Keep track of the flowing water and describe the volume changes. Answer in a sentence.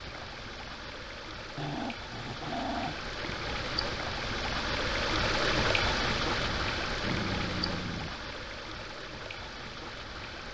The loudness of the flowing water goes up, then down.